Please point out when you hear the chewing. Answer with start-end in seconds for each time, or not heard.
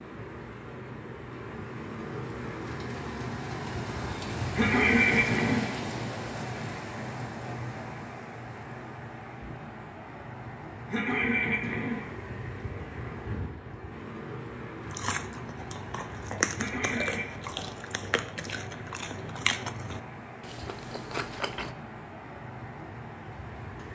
14.8-21.8.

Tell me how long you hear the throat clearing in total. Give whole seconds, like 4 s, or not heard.
3 s.